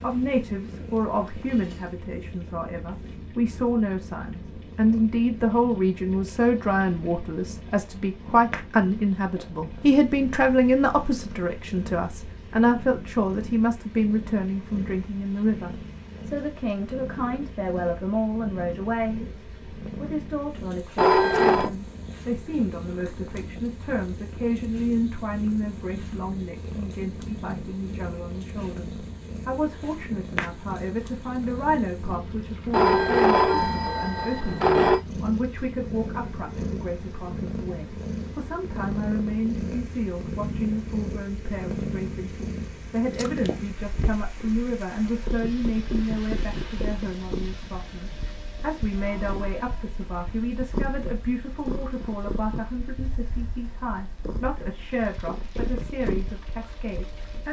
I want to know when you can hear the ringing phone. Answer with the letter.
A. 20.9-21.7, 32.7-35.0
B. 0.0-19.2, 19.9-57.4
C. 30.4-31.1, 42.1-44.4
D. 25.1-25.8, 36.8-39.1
A.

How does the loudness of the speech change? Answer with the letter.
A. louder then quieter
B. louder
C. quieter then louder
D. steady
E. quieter
E.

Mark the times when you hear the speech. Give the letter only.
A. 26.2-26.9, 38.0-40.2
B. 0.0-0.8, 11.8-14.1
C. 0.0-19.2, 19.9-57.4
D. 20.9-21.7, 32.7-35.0
C.